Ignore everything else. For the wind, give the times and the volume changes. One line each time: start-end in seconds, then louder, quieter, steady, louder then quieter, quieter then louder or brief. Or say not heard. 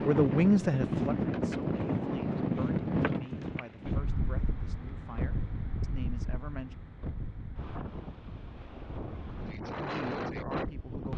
0.0-11.1 quieter then louder.